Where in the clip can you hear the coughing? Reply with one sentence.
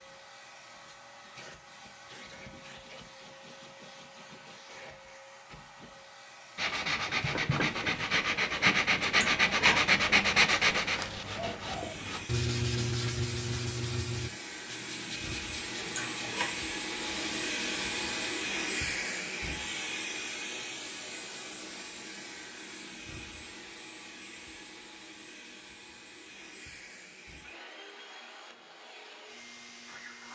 You can hear the coughing from 9.0 to 9.8 s and from 15.8 to 16.5 s.